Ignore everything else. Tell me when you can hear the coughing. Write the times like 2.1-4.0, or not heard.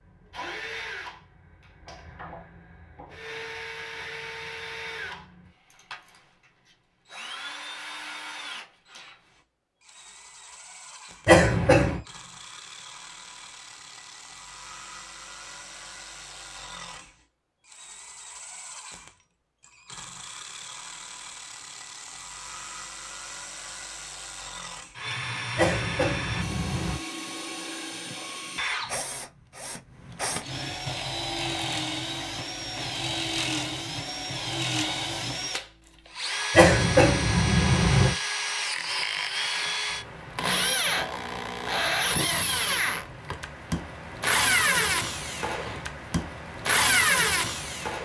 11.2-12.0, 25.6-27.0, 36.5-38.1.